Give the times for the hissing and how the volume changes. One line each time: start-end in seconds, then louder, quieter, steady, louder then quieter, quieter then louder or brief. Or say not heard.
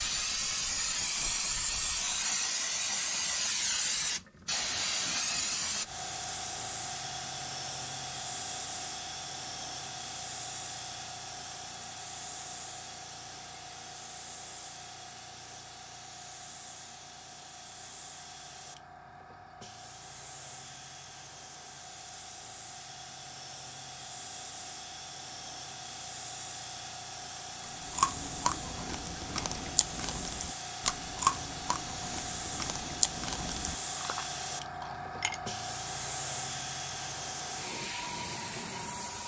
0.0-39.2 quieter then louder.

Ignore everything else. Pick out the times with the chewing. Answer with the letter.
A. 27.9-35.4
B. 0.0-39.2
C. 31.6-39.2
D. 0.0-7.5
A.